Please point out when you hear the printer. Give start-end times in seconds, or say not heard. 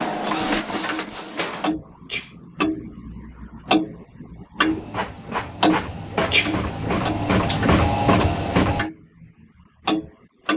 0.0-1.7, 4.6-8.9.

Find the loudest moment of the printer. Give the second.
8 s.